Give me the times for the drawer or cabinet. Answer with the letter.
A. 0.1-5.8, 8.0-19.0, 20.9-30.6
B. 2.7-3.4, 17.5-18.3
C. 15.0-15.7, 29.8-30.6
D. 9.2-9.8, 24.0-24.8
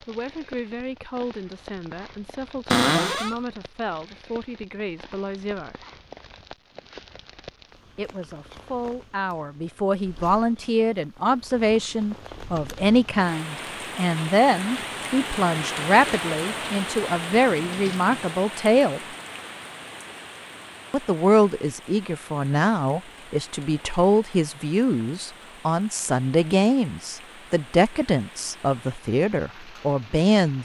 B.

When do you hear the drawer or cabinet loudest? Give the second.
3 s.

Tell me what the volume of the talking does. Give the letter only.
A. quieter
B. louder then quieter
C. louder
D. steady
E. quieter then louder
C.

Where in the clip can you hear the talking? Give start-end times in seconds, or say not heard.
0.1-5.8, 8.0-19.0, 20.9-30.6.